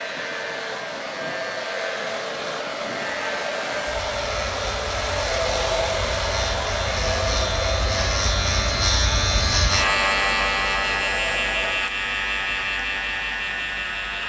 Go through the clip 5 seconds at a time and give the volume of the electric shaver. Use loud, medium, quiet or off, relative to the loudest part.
medium, loud, loud.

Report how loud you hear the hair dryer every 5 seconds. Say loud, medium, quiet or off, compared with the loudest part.
loud, loud, medium.